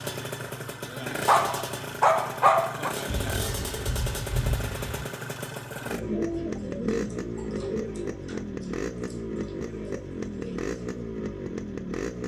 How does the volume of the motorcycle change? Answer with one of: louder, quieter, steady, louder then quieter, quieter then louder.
steady.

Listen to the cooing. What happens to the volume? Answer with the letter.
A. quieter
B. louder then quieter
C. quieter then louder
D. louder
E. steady
A.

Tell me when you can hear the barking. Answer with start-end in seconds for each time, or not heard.
1.2-3.0.